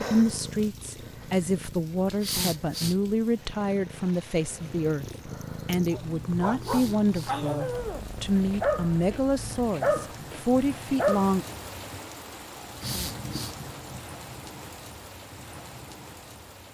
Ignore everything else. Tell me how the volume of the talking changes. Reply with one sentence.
The volume of the talking stays about the same.